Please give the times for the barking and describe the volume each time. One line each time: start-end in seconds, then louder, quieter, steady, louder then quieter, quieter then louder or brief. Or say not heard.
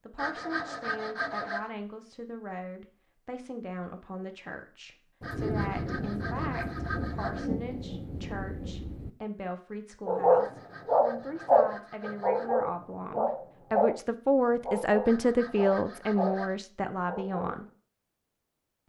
10.1-17.6 quieter.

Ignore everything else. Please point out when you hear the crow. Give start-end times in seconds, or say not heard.
not heard.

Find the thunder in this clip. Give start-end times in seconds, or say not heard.
5.2-9.1.